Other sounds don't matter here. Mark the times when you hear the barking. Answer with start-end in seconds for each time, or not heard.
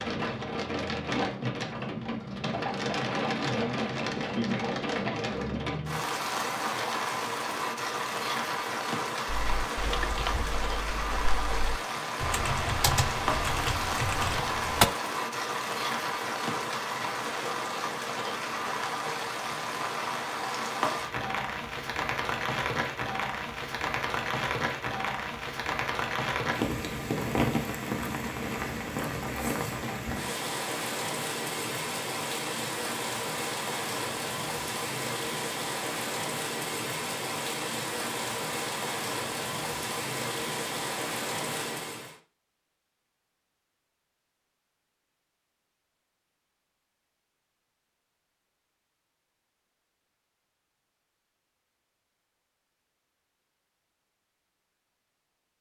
not heard.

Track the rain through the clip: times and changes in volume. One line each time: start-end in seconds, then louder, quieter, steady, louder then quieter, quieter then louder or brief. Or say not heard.
0.0-42.1 steady.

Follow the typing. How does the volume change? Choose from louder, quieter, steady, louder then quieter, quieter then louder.
quieter then louder.